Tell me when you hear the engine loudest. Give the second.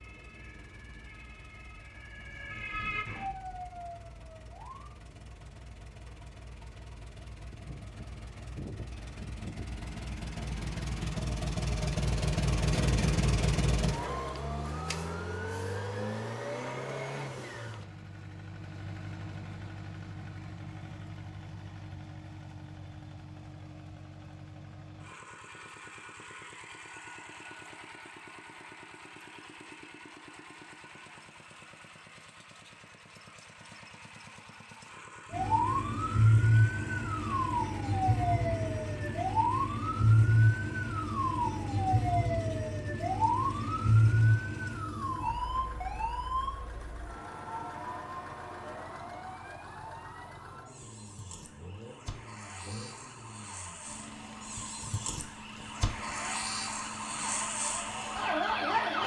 13 s.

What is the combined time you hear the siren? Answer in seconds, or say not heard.
29 s.